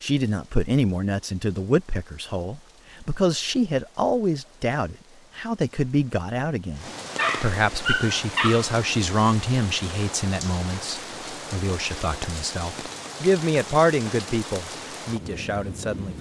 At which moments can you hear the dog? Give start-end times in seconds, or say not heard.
7.2-8.7.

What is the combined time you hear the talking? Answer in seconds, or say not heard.
16 s.